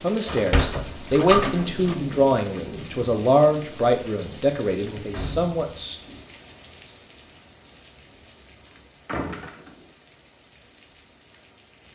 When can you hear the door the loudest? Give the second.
1 s.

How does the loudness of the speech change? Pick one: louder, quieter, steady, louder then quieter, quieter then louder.
quieter.